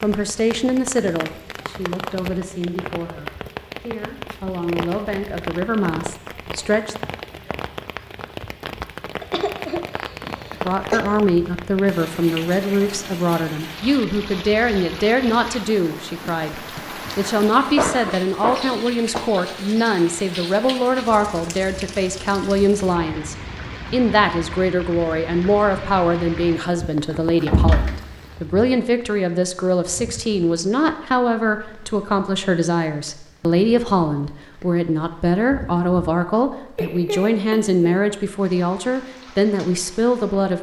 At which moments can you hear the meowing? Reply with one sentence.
The meowing can't be heard in this clip.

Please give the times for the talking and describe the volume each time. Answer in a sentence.
The talking can be heard from 0.0 to 7.0 s, getting quieter then louder; and from 10.7 to 40.5 s, at a steady volume.